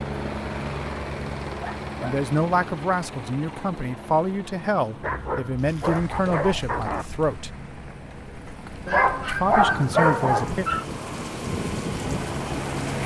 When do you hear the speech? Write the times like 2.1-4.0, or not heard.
2.0-7.5, 9.2-10.7.